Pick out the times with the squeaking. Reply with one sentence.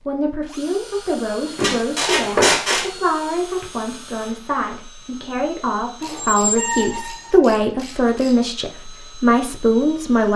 The squeaking can be heard from 1.6 to 2.9 s and from 6.0 to 7.3 s.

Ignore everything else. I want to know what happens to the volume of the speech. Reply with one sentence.
The loudness of the speech goes up.